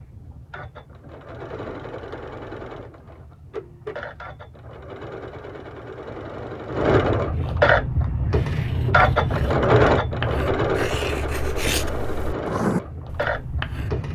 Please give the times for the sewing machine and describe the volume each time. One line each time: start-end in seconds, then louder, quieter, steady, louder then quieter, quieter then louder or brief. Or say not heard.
0.0-14.0 louder then quieter.